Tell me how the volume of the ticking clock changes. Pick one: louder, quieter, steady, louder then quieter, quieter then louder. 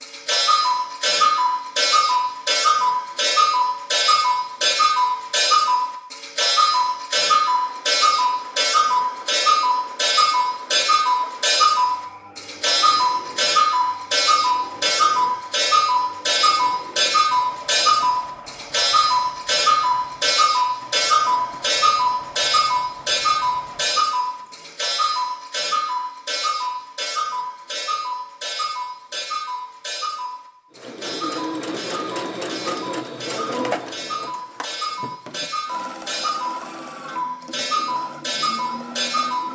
quieter.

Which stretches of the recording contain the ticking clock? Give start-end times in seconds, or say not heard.
0.0-39.4.